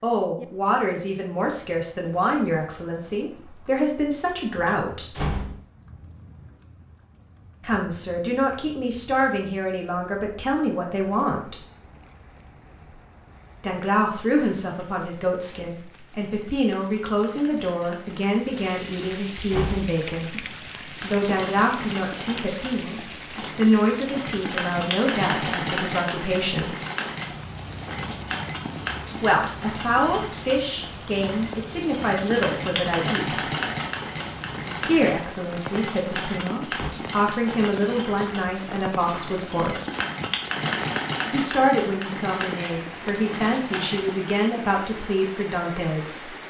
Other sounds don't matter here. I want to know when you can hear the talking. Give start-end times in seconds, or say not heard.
0.0-5.2, 7.6-11.6, 13.6-26.8, 29.2-33.5, 34.9-39.8, 41.3-46.4.